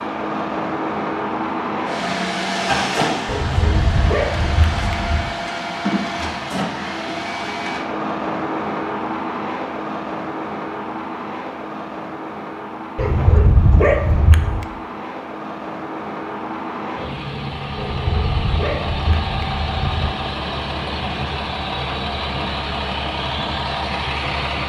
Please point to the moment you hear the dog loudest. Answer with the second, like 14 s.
14 s.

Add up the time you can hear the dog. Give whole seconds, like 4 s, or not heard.
6 s.